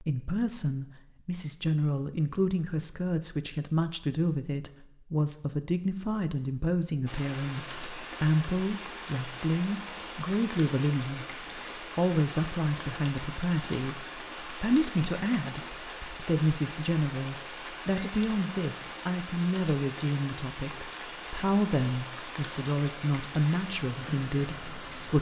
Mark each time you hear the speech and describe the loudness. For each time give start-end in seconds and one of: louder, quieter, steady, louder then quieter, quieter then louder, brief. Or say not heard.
0.0-25.1 steady.